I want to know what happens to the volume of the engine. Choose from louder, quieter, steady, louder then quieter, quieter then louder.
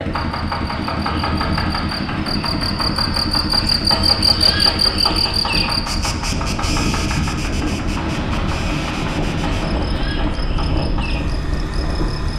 quieter.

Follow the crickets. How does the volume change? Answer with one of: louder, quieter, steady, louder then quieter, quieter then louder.
louder then quieter.